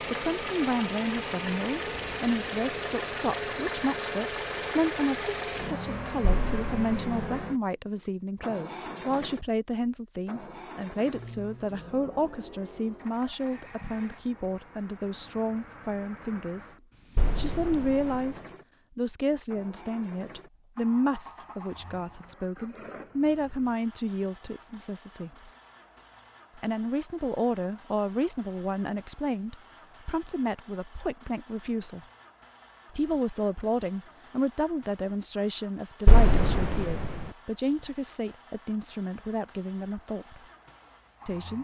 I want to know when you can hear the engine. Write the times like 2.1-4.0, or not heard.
0.0-41.5.